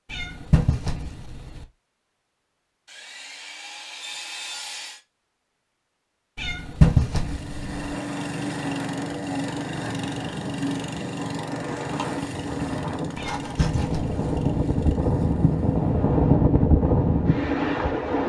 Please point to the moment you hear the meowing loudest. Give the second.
7 s.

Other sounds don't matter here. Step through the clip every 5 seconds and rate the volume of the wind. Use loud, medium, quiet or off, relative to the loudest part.
off, quiet, medium, loud.